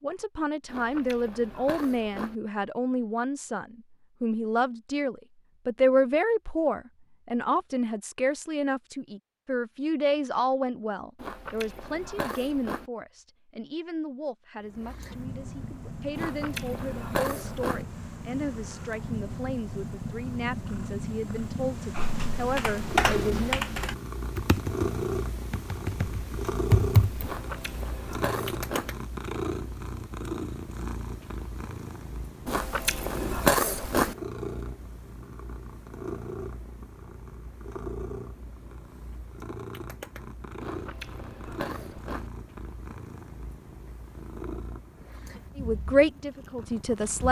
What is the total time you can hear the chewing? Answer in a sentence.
The chewing can be heard for 10 seconds in total.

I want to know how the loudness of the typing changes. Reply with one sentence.
The volume of the typing goes down, then up.